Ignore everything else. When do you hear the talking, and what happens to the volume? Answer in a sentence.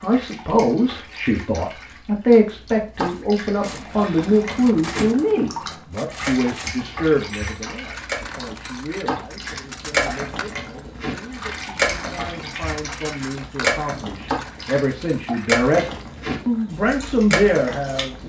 The talking can be heard from 0.0 to 18.2 s, getting quieter then louder.